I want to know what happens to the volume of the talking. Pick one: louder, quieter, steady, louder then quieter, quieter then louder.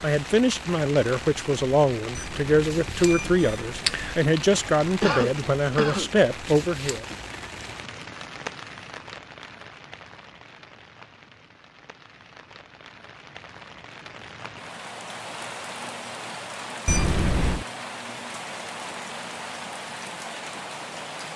steady.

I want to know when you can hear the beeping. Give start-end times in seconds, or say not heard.
2.1-4.2, 16.9-17.6.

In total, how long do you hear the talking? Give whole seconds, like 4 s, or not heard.
7 s.